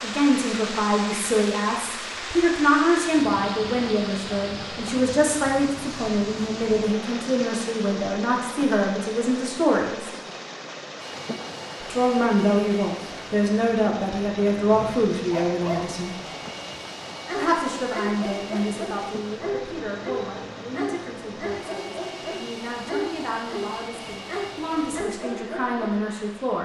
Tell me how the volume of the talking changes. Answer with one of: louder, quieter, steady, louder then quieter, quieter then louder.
quieter.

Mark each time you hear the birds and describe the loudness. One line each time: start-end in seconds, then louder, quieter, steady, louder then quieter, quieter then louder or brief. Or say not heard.
not heard.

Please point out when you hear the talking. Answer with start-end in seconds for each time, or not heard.
0.0-10.1, 11.8-16.1, 17.4-26.6.